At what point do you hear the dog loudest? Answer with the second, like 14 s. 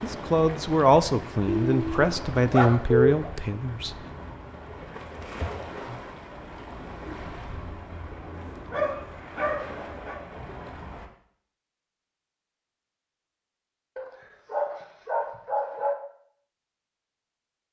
3 s.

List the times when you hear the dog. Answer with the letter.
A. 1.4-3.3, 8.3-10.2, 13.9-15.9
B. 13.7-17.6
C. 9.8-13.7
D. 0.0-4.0
A.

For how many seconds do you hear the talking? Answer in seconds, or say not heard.
4 s.